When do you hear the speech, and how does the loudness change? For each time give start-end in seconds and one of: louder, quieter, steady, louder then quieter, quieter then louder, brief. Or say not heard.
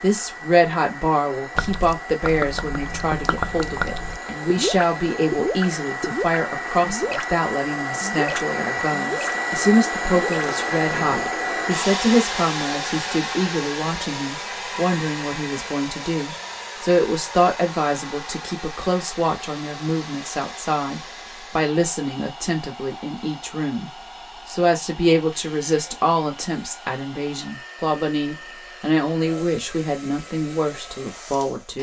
0.0-31.7 steady.